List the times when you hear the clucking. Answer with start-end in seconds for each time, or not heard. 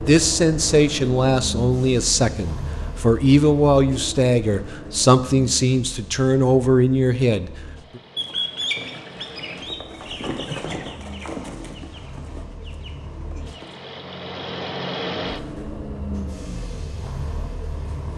8.2-13.8.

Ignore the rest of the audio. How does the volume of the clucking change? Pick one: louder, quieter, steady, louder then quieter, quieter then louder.
quieter.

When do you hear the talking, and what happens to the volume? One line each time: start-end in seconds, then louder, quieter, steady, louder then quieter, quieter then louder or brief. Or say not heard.
0.0-8.0 steady.